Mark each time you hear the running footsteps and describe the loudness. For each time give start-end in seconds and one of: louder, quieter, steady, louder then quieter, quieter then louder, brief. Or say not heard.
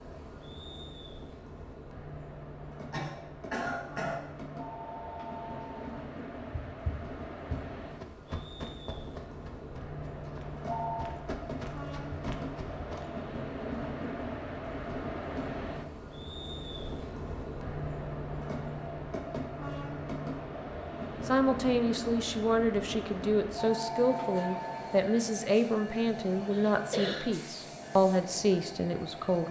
6.5-13.1 quieter then louder.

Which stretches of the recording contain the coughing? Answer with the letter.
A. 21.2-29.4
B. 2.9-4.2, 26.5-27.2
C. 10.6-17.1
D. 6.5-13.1
B.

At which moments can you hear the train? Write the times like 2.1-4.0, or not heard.
0.0-29.4.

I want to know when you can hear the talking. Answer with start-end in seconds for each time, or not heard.
21.2-29.4.